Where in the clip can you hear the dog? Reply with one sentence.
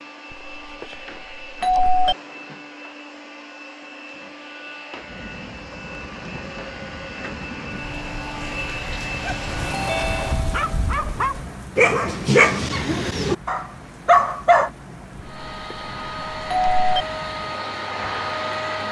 You can hear the dog from 9.2 to 14.7 s.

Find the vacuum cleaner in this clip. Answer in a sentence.
You can hear the vacuum cleaner from 0.0 to 10.4 s and from 15.2 to 18.8 s.